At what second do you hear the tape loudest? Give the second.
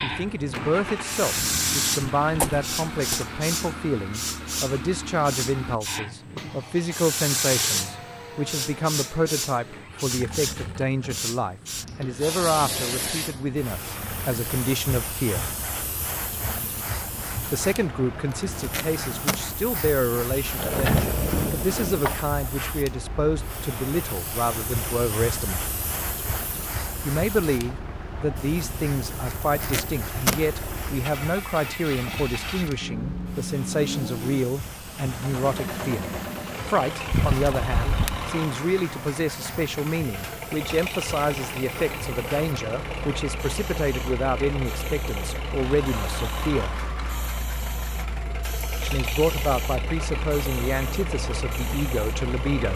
30 s.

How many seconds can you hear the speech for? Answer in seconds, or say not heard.
47 s.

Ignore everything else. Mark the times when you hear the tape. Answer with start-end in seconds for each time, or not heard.
18.3-19.4, 29.3-30.4.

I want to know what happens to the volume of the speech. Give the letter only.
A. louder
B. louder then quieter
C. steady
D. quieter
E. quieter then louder
C.